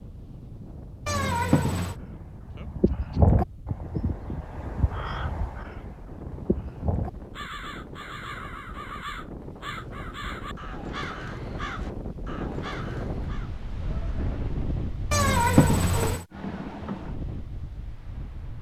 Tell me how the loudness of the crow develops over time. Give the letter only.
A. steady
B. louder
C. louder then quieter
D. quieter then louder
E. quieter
E.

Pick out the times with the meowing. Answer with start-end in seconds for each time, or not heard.
1.1-1.9, 15.1-16.2.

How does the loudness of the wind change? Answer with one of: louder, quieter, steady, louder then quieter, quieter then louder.
louder.